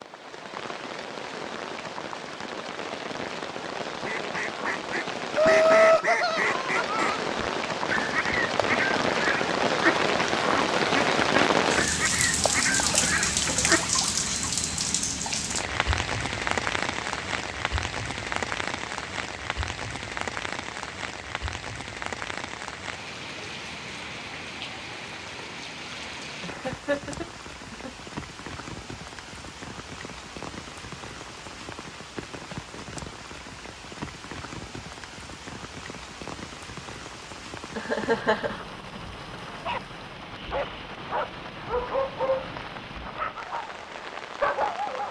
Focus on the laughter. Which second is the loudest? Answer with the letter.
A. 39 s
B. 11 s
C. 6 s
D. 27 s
C.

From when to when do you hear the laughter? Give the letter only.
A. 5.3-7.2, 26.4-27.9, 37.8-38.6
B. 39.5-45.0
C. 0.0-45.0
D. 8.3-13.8
A.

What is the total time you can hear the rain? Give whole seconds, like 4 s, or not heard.
45 s.